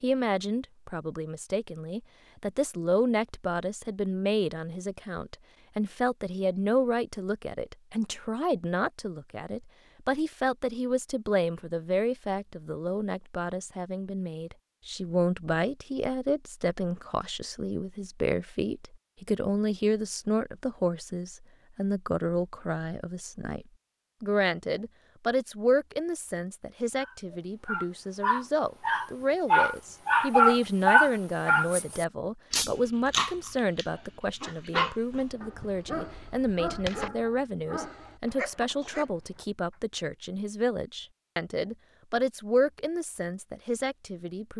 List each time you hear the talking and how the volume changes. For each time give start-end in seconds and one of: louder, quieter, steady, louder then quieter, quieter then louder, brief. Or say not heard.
0.0-44.5 steady.